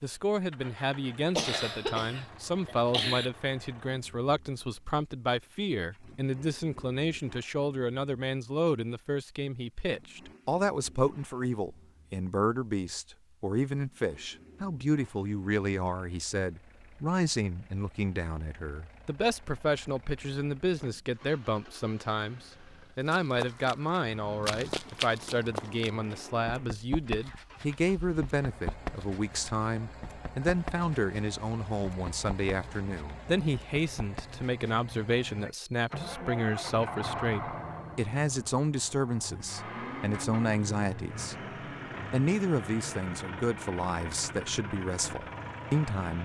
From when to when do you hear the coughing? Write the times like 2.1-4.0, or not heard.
1.4-3.3.